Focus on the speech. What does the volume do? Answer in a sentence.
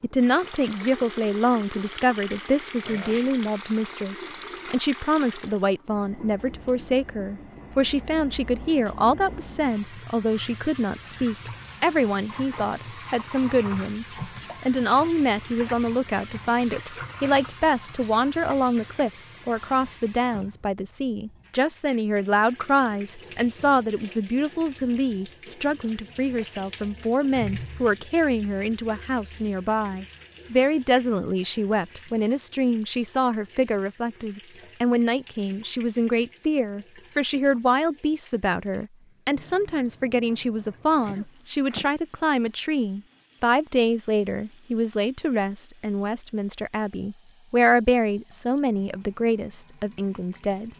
The volume of the speech stays about the same.